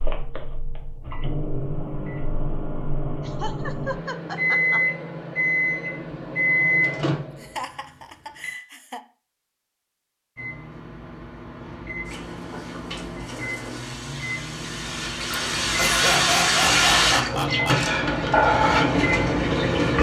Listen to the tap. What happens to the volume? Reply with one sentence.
The volume of the tap goes up.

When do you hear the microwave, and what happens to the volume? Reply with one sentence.
You can hear the microwave from 0.0 to 8.6 s, getting louder; and from 10.3 to 19.9 s, getting louder.